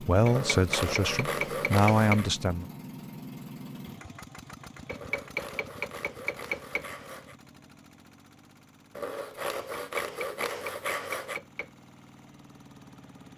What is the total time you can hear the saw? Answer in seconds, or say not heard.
7 s.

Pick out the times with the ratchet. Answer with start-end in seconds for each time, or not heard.
not heard.